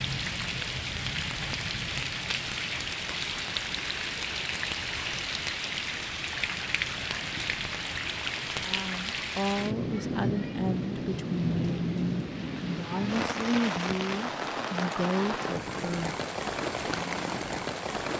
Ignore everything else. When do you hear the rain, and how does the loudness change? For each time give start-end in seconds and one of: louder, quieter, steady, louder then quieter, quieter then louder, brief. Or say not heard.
0.0-18.1 steady.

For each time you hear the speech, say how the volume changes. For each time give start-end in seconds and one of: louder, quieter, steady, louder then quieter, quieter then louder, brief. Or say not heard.
8.6-16.1 steady.